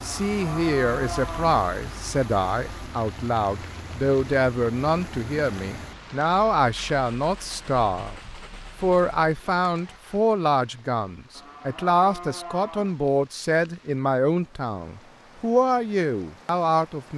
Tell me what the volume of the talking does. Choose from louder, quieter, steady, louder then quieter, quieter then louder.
steady.